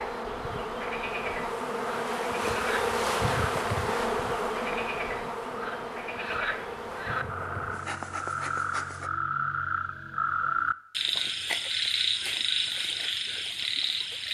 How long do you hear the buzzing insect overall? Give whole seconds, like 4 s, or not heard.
9 s.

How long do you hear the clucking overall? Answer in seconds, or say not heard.
not heard.